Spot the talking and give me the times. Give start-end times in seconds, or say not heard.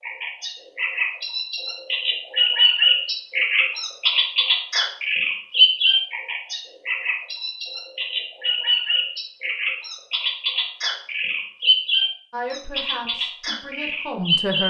12.3-14.6.